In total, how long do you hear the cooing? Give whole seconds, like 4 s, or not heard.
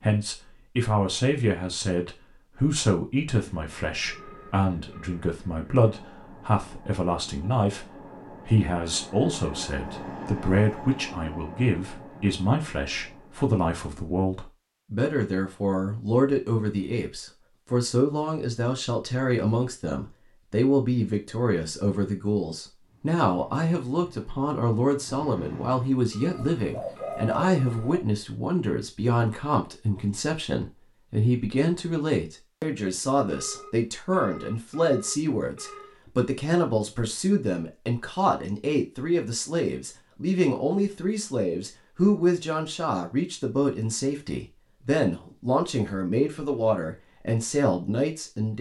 2 s.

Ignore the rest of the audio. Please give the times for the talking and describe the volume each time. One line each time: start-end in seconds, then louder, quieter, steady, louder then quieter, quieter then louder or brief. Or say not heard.
0.0-48.5 steady.